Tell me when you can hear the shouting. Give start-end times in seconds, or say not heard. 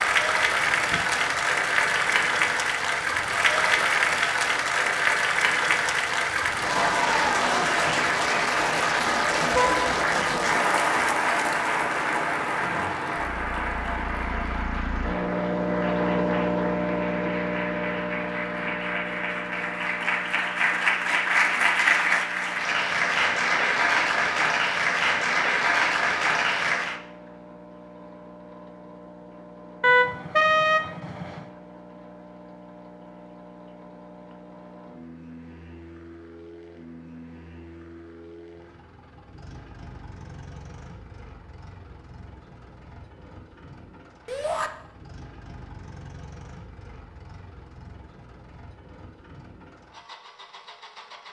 44.2-44.7.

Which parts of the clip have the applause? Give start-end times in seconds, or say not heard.
0.0-27.0.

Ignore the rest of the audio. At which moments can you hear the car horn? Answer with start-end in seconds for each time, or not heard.
9.5-9.9, 29.8-31.4.